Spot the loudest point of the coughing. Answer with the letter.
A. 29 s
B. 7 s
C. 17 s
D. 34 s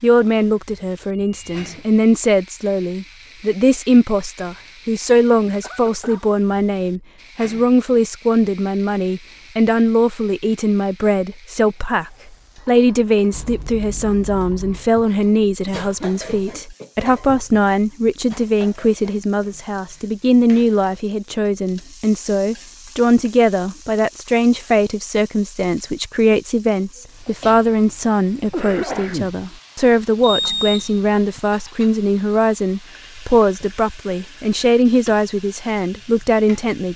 A.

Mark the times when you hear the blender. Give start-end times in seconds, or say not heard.
not heard.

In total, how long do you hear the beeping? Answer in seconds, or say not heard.
3 s.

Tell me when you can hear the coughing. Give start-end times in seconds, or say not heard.
5.6-6.2, 15.8-16.9, 28.5-29.4.